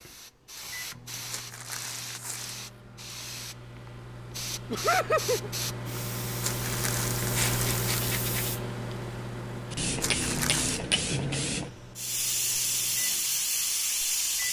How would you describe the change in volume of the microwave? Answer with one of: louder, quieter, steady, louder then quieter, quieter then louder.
louder then quieter.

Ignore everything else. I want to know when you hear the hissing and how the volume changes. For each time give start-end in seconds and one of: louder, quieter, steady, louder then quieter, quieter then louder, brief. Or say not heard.
0.0-14.4 louder.